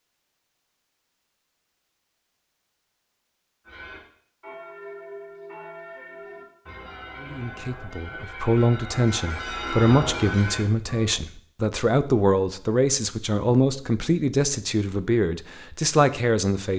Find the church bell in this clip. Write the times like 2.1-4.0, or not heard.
3.6-11.2.